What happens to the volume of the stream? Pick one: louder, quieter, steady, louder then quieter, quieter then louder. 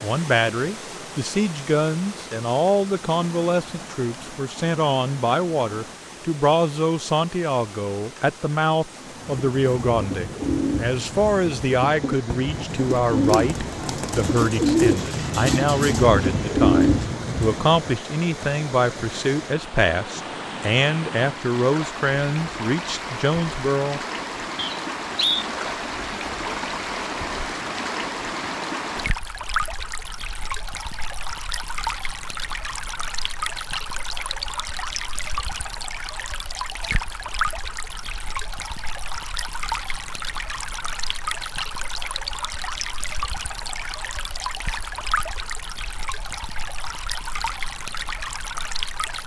louder.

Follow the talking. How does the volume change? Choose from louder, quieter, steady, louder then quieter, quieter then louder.
steady.